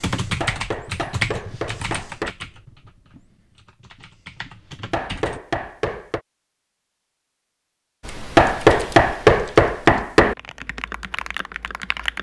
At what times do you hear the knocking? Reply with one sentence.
The knocking can be heard from 0.4 to 2.4 s, from 4.9 to 6.2 s and from 8.3 to 10.3 s.